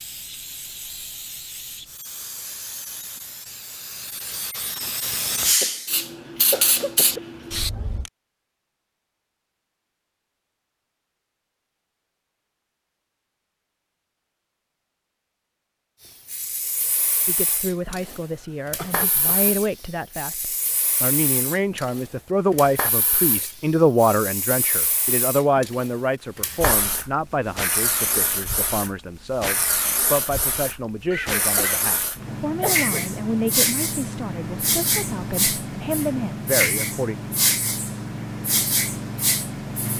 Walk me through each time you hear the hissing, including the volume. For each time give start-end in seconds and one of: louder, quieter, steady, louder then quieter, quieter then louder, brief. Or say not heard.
0.0-8.1 louder
16.1-39.9 louder.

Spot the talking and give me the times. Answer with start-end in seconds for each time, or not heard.
17.2-37.1.